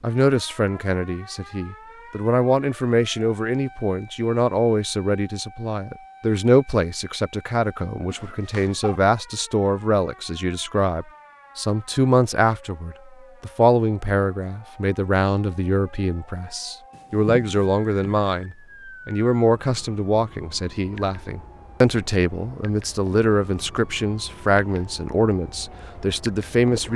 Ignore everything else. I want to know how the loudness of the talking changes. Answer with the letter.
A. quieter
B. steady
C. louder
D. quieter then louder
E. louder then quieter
B.